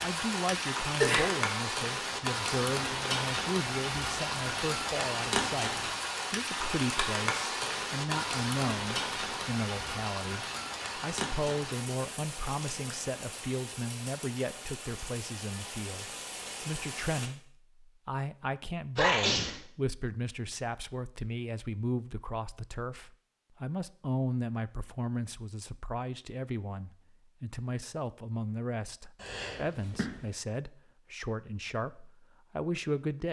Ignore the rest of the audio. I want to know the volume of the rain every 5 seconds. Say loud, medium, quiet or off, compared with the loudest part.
loud, loud, medium, medium, off, off, off.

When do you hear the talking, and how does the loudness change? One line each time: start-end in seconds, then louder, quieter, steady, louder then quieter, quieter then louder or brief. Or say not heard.
0.0-33.2 steady.